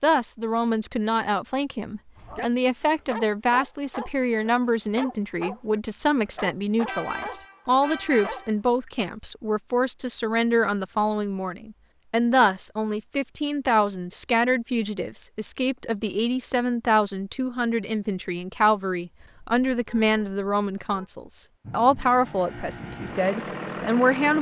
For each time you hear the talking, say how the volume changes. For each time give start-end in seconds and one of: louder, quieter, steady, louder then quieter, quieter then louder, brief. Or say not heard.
0.0-24.3 steady.